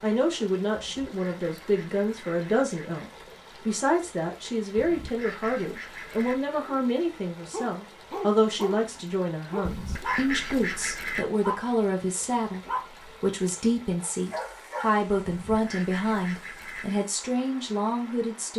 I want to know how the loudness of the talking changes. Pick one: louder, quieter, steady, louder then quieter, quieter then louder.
steady.